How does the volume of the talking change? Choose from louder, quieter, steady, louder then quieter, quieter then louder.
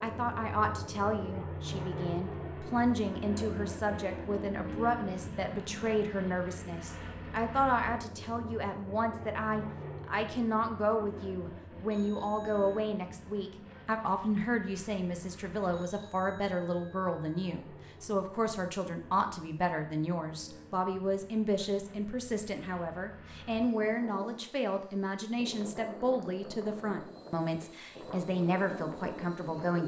steady.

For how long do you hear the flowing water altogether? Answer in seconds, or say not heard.
not heard.